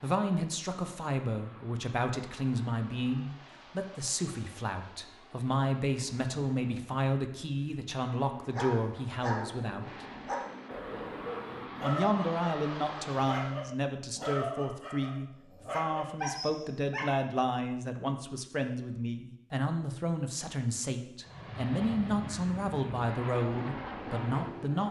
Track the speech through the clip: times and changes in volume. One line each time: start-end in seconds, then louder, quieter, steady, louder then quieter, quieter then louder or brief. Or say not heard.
0.0-10.1 steady
11.8-24.8 steady.